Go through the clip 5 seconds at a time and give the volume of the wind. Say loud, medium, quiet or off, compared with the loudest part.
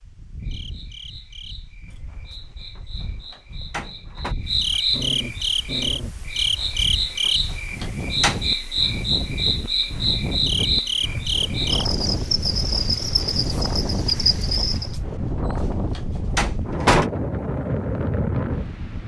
quiet, medium, loud, loud.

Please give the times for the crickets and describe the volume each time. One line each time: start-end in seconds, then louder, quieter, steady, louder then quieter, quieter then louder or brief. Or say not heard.
0.0-14.9 louder.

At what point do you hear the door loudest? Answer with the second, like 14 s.
17 s.